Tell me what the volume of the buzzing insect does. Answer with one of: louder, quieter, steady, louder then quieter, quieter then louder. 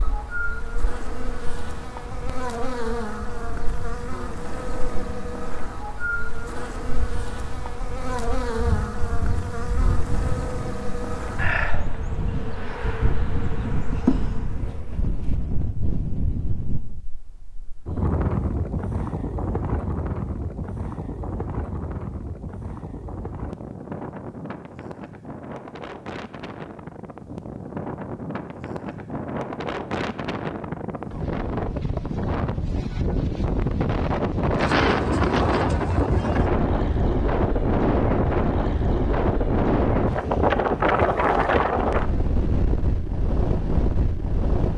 steady.